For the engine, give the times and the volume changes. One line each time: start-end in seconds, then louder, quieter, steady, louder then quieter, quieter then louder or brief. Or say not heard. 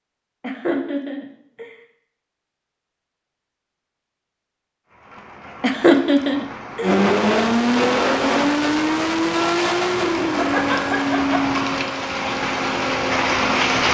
6.8-13.8 quieter.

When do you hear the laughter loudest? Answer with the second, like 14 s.
6 s.